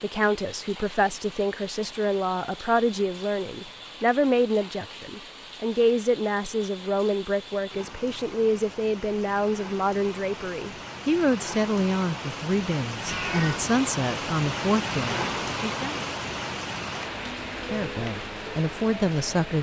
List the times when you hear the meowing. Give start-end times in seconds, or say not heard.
13.1-13.7.